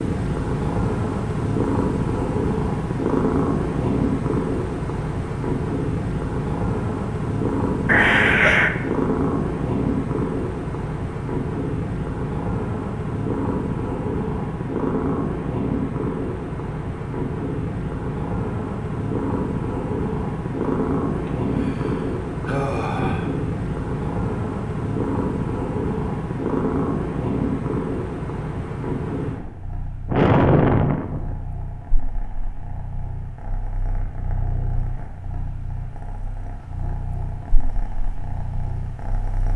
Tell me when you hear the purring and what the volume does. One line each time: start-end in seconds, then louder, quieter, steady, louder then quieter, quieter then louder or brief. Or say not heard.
0.0-39.5 quieter.